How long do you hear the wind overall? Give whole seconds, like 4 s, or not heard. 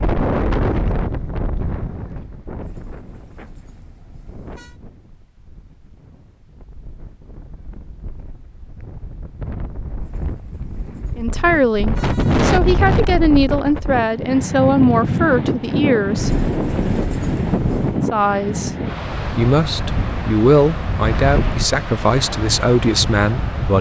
24 s.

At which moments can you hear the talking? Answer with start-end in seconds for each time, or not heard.
11.2-16.4, 18.1-23.7.